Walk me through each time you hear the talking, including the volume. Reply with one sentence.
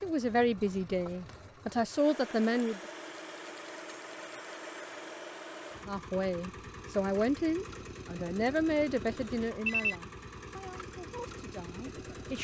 The talking can be heard briefly from 0.0 to 2.8 s; and from 5.8 to 12.3 s, getting quieter.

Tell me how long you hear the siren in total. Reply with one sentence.
The siren can't be heard in this clip.